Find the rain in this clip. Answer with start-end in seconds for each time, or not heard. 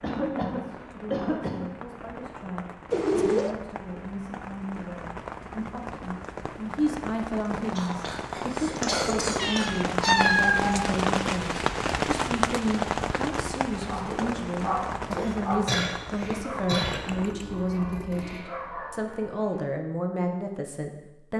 0.0-17.4.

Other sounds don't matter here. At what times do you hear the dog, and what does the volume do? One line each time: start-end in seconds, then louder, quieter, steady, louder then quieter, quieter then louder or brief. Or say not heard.
13.8-19.6 quieter then louder.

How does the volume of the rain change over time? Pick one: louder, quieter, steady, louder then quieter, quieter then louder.
louder then quieter.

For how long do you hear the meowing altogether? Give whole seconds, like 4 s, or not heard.
4 s.